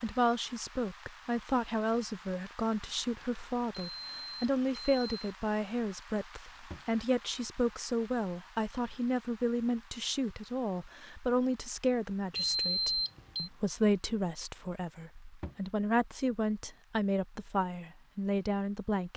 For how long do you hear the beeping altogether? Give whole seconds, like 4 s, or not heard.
3 s.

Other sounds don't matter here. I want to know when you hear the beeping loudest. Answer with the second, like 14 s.
13 s.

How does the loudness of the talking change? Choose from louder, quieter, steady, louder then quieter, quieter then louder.
steady.